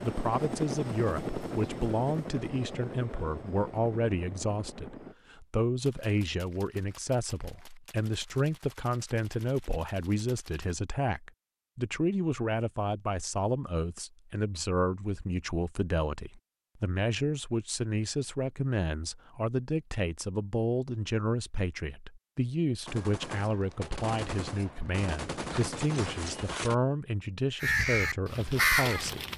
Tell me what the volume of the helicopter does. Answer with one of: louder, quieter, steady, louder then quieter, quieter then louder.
quieter.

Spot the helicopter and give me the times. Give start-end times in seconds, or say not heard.
0.0-5.2.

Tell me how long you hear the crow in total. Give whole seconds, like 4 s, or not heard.
2 s.